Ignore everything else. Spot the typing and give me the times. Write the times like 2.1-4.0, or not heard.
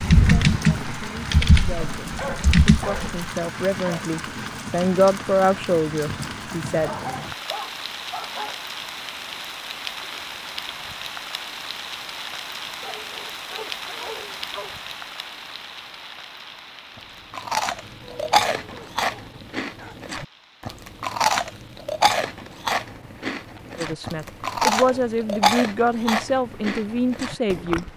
0.0-3.2.